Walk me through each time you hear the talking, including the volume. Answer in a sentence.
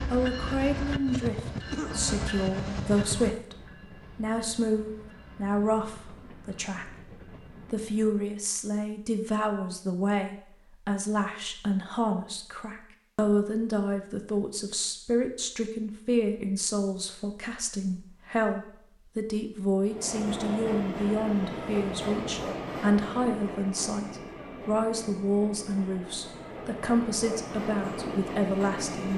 The talking can be heard from 0.1 to 29.1 s, at a steady volume.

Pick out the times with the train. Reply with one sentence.
The train can be heard from 0.0 to 8.3 s and from 19.8 to 29.1 s.